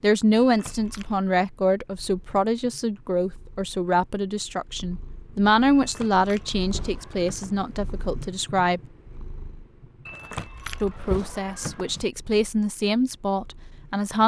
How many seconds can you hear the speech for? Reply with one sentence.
You can hear the speech for 12 seconds altogether.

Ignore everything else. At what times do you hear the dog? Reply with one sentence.
The dog can't be heard in this clip.